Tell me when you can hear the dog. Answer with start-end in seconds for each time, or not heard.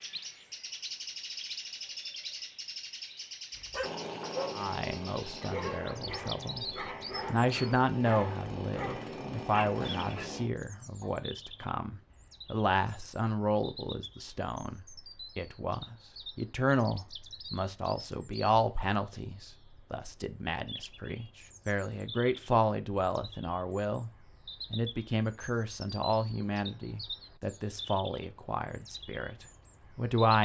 3.5-11.1.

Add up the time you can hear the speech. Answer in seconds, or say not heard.
25 s.